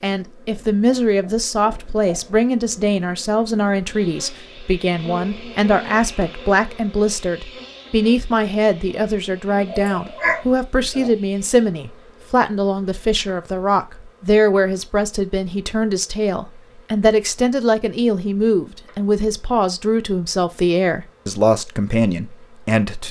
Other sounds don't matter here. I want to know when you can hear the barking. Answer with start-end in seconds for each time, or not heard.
9.7-11.1.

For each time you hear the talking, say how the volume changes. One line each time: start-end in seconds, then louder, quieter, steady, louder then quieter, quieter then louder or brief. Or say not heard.
0.0-23.0 steady.